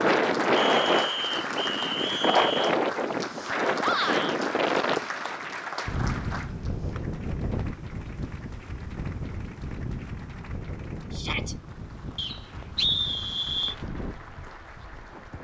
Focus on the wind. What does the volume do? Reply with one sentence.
The loudness of the wind goes down.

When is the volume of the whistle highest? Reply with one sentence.
The loudest moment of the whistle is at 13 seconds.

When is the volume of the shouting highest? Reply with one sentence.
The volume of the shouting peaks at 4 seconds.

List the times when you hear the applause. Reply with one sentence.
You can hear the applause from 0.0 to 15.3 s.